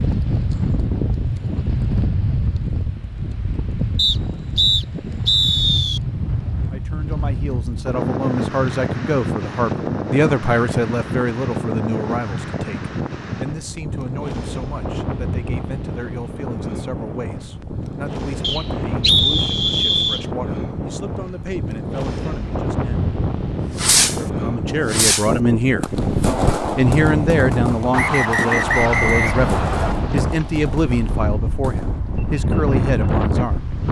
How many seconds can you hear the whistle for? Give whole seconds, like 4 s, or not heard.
6 s.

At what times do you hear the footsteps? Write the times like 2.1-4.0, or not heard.
not heard.